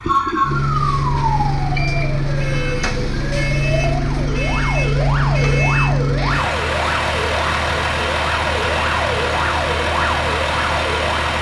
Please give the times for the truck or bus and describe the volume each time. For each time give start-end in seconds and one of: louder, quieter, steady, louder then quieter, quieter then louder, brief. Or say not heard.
0.0-11.3 steady.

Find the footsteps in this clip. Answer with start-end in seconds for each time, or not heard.
not heard.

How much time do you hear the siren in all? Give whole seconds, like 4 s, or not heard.
11 s.